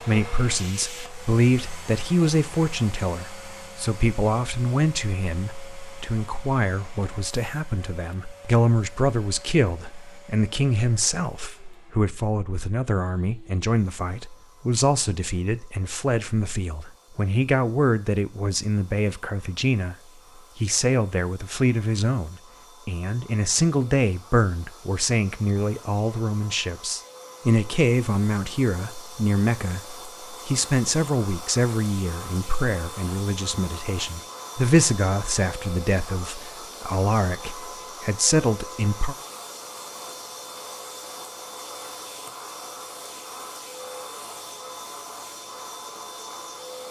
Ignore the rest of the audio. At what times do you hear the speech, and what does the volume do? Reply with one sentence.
You can hear the speech from 0.0 to 19.9 s, at a steady volume; and from 20.6 to 39.1 s, at a steady volume.